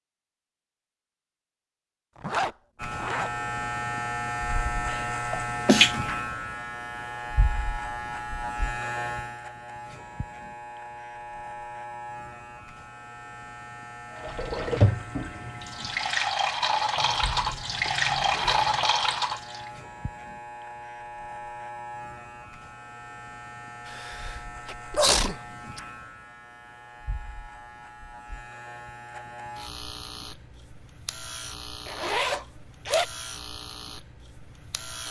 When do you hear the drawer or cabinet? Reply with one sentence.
The drawer or cabinet can't be heard in this clip.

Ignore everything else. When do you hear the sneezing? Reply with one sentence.
You can hear the sneezing from 4.9 to 6.0 s and from 23.9 to 25.8 s.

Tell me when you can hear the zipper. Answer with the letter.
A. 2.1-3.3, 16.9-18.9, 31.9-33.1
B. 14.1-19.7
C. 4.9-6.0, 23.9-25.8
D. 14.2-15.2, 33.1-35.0
A.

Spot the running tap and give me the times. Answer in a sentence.
The running tap can be heard from 14.1 to 19.7 s.